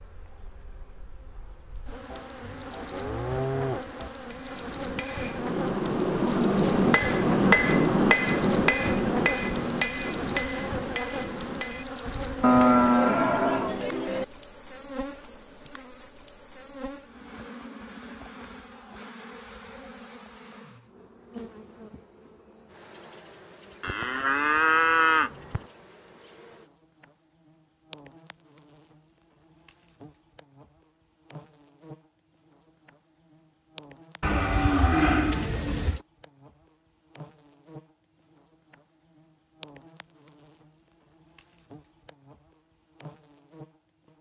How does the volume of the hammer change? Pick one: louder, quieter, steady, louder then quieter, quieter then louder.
louder then quieter.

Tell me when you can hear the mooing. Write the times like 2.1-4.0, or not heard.
2.1-4.1, 12.4-14.2, 23.8-25.6, 34.2-36.0.